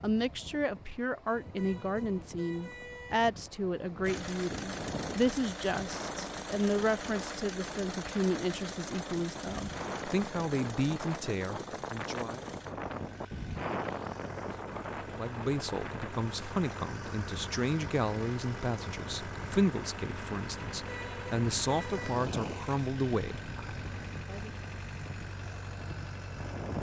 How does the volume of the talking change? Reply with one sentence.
The volume of the talking stays about the same.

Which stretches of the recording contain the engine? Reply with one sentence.
The engine can be heard from 4.0 to 26.7 s.